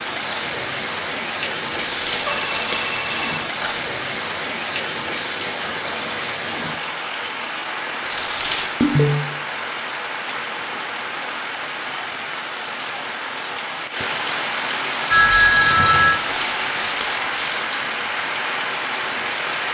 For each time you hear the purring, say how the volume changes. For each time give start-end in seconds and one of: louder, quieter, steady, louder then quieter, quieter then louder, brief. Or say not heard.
not heard.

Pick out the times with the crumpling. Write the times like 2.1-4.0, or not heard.
1.6-3.4, 8.1-8.8, 16.1-17.7.